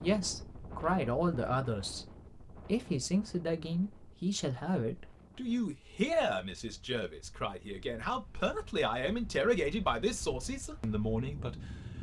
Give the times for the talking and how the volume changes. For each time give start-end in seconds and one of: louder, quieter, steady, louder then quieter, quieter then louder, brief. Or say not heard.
0.0-11.9 steady.